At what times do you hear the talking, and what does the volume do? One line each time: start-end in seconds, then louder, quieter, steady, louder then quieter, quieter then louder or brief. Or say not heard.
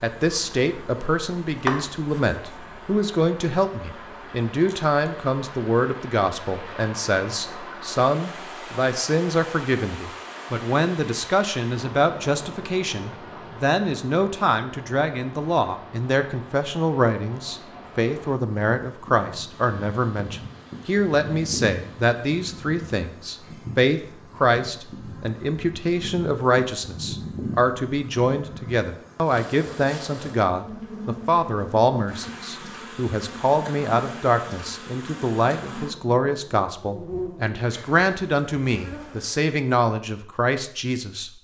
0.0-41.3 steady.